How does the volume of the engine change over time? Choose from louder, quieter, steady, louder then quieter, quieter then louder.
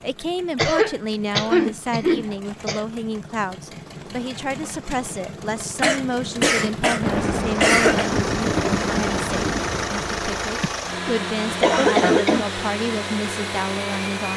louder.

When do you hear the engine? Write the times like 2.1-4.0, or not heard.
0.0-14.3.